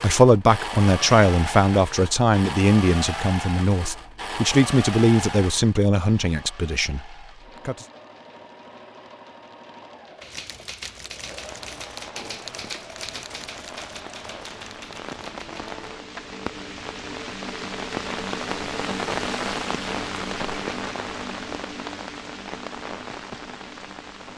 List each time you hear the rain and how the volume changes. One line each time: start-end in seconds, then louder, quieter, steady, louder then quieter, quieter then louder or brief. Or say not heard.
11.2-24.3 louder then quieter.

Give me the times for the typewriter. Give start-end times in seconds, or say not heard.
7.0-15.8.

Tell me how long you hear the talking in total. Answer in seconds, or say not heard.
8 s.